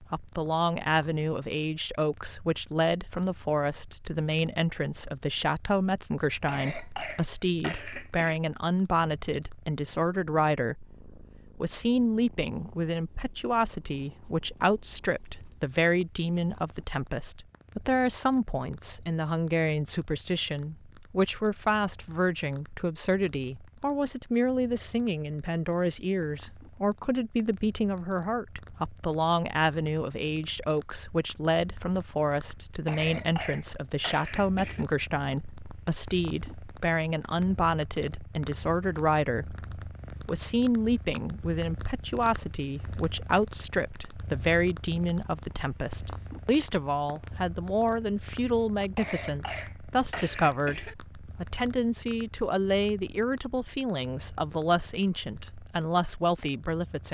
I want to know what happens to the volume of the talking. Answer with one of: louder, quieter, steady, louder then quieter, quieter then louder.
steady.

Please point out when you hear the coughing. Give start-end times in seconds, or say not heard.
6.5-8.4, 32.9-34.9, 49.0-51.0.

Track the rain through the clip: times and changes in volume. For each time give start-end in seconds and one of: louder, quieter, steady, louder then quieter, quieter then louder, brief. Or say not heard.
not heard.